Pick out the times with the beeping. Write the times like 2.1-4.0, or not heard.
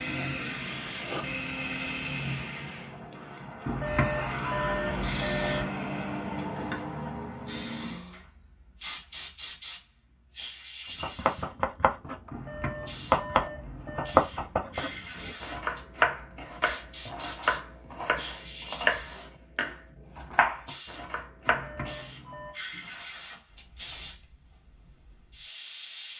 3.6-5.7, 12.3-14.2, 21.4-22.6.